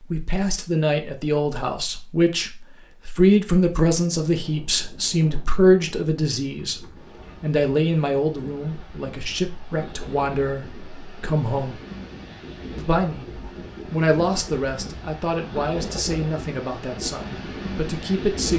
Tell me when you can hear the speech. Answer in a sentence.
You can hear the speech from 0.0 to 11.8 s, from 12.8 to 13.3 s and from 13.9 to 18.5 s.